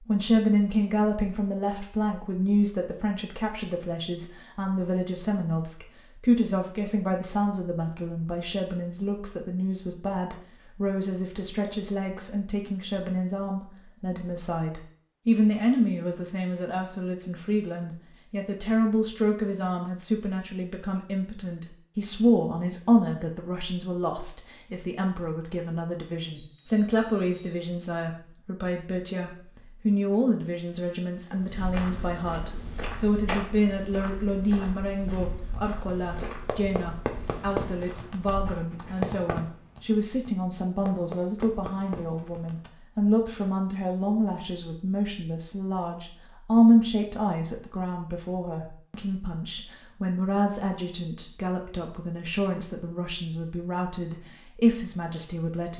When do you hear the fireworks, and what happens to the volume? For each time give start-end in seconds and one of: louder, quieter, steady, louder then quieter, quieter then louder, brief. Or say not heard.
35.5-42.7 quieter then louder.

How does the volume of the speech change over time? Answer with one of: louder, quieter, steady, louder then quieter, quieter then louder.
steady.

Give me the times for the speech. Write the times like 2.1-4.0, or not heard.
0.1-55.7.